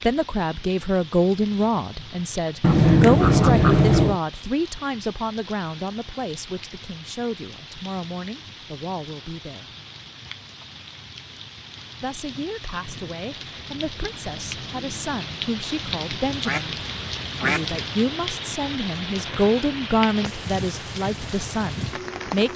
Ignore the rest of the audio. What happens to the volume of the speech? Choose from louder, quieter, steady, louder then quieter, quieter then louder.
quieter then louder.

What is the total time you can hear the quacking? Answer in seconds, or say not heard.
3 s.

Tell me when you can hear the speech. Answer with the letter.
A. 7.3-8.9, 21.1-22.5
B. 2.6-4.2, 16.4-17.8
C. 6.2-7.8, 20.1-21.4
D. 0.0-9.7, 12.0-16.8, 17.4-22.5
D.